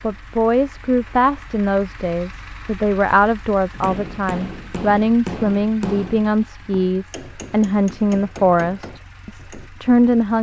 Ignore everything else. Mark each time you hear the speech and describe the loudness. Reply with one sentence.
You can hear the speech from 0.0 to 10.3 s, at a steady volume.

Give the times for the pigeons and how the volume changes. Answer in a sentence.
You can't hear the pigeons here.